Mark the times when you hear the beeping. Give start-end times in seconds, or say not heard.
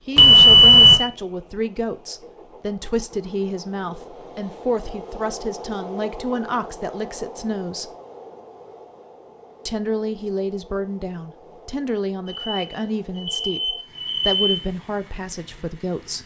0.1-1.0, 12.2-14.6.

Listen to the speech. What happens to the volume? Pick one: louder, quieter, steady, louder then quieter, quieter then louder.
steady.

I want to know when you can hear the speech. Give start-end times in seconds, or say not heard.
0.1-7.9, 9.7-16.2.